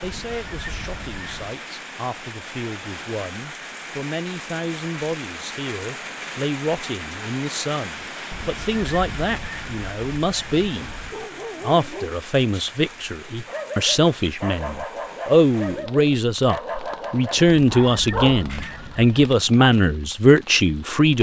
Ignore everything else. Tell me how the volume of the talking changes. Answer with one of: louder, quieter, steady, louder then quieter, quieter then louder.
louder.